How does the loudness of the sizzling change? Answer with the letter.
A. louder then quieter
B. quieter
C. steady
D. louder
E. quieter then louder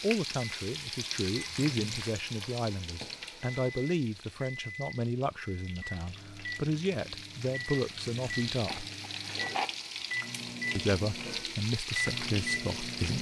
E.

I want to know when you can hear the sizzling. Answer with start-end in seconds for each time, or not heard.
0.0-13.1.